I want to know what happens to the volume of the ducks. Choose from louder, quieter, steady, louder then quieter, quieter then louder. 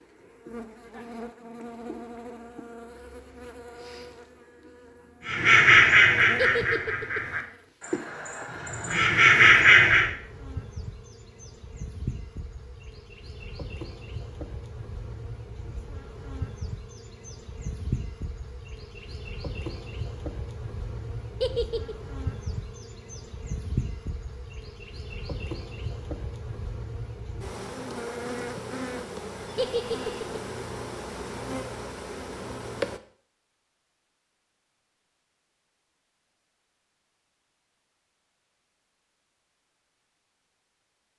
quieter then louder.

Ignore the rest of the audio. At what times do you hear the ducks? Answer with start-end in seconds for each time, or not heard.
5.2-10.1.